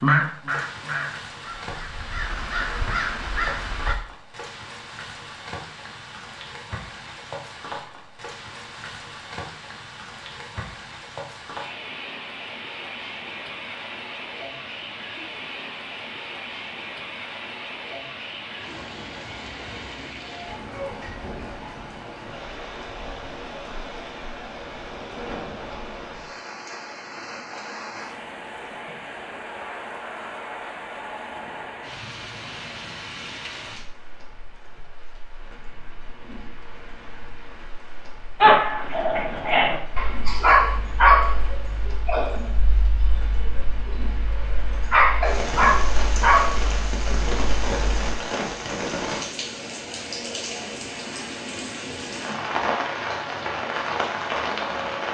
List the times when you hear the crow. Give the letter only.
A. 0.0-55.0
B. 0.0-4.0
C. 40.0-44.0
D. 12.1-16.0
B.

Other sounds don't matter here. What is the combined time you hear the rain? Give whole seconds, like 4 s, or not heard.
55 s.